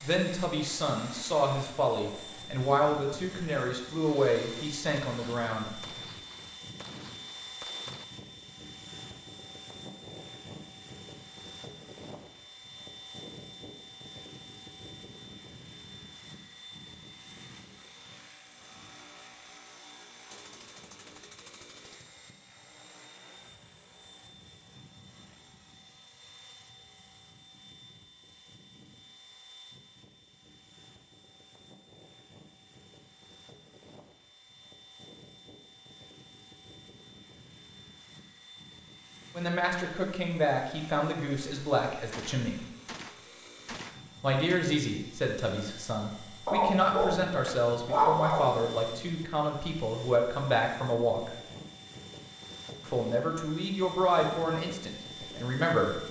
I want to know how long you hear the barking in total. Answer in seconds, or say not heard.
2 s.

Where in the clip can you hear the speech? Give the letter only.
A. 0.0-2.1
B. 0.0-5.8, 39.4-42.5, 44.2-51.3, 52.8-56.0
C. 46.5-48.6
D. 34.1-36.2
B.